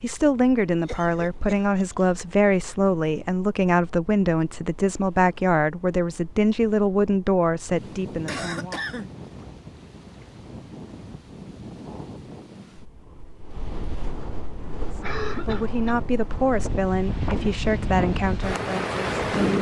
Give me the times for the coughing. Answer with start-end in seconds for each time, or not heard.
0.8-2.0, 8.2-9.1, 15.0-16.0.